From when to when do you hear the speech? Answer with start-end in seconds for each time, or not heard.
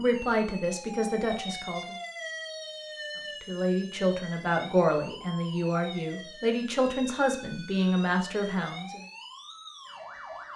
0.0-1.9, 3.4-9.0.